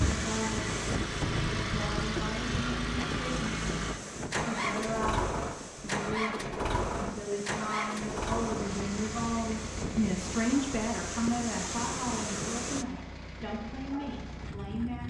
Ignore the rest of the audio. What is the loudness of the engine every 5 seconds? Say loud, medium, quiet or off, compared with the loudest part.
loud, loud, medium.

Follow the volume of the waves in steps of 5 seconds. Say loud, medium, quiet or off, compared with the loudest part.
loud, medium, loud.